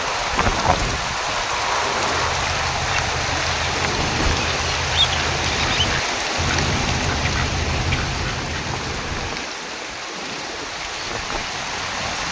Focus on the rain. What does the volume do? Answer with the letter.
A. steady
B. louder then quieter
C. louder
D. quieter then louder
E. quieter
E.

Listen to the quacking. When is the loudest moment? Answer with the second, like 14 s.
5 s.